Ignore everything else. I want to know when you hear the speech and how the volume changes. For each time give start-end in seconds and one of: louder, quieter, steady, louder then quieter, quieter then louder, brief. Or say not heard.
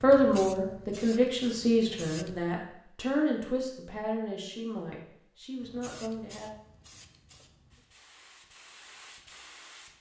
0.0-6.5 quieter.